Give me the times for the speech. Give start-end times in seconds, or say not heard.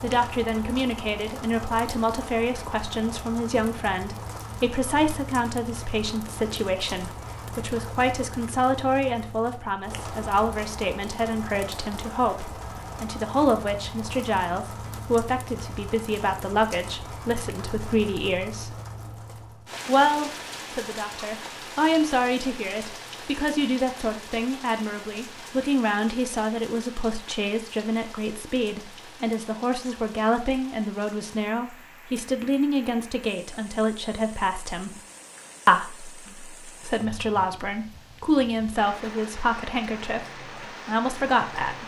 0.0-18.8, 19.9-35.0, 35.6-41.8.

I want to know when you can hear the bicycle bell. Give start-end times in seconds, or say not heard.
not heard.